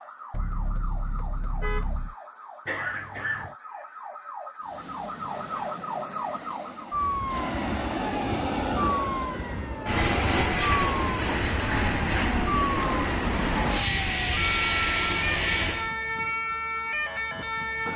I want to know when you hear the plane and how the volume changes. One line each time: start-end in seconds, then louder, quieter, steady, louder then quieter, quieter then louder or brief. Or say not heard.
4.6-15.9 louder.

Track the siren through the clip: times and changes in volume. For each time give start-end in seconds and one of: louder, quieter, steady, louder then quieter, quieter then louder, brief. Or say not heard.
0.0-17.9 louder.